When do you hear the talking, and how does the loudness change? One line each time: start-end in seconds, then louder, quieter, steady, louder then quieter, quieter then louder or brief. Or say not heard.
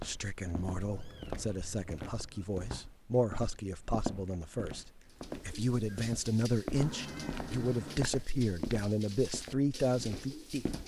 0.0-10.7 louder.